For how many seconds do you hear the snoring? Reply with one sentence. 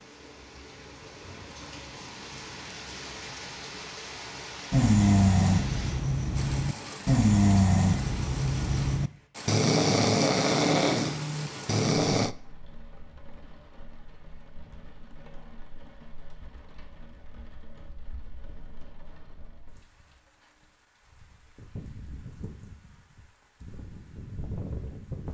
You can hear the snoring for 8 seconds altogether.